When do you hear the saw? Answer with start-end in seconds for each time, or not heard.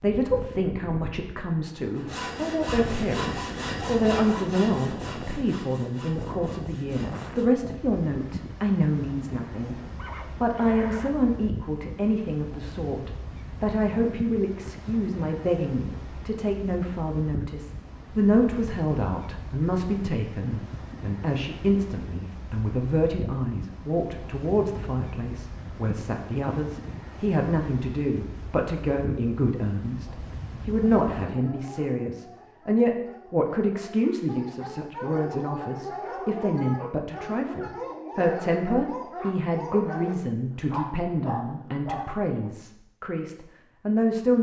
1.9-7.5.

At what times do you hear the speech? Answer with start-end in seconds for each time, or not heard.
0.0-9.8, 10.4-44.3.